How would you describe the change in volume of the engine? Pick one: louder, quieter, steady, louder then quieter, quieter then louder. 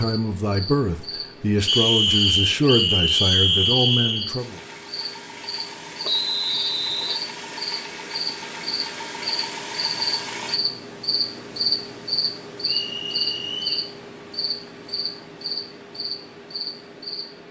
louder.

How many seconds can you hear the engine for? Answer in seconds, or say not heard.
6 s.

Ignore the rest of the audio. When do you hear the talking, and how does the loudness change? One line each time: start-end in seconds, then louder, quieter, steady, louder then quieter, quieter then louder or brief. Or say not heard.
0.0-4.6 steady.